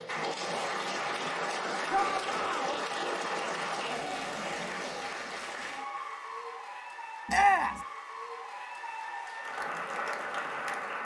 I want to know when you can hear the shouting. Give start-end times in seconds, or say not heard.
1.9-2.8, 7.2-7.8.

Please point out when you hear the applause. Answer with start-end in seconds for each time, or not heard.
0.0-11.0.